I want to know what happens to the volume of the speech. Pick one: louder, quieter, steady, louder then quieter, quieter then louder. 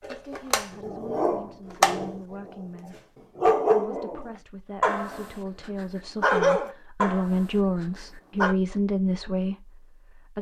louder.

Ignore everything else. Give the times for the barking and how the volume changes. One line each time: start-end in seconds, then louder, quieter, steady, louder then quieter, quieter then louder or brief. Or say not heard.
0.0-2.5 brief
3.4-8.6 louder then quieter.